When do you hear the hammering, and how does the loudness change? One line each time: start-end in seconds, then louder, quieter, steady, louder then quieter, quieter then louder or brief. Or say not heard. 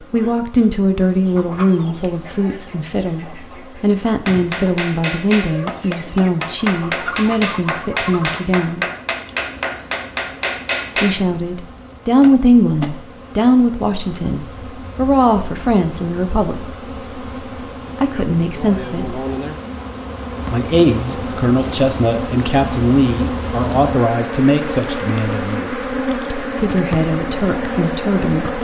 4.2-11.2 steady.